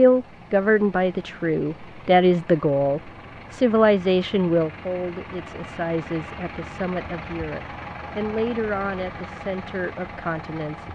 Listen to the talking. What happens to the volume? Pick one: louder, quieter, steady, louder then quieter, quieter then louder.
quieter.